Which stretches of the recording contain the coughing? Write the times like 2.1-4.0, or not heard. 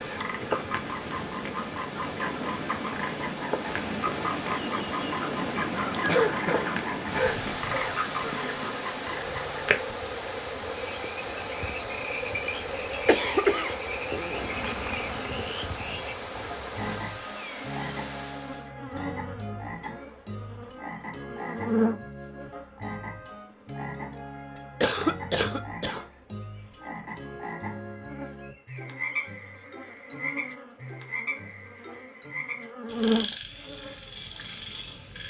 6.0-8.0, 13.1-13.8, 24.8-26.1.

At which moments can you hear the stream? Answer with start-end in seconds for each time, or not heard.
0.0-18.8.